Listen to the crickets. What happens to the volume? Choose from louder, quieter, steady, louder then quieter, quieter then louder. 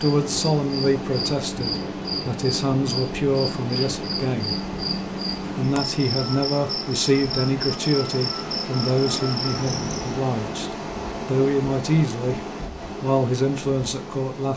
steady.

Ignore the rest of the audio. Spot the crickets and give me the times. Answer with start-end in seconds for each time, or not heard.
0.0-10.2.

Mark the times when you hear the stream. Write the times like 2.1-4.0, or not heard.
0.0-14.5.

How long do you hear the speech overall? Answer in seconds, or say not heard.
13 s.